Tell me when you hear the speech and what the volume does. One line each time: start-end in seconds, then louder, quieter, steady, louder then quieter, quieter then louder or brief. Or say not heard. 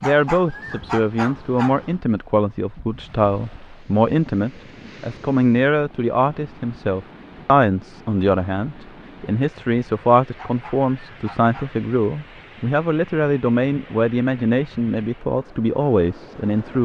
0.0-16.7 steady.